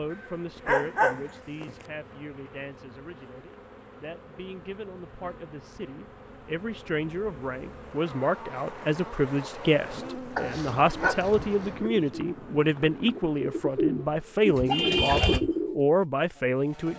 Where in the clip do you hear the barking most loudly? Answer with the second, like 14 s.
1 s.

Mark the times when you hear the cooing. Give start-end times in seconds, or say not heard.
9.9-15.8.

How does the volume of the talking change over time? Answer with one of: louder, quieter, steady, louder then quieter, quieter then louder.
louder.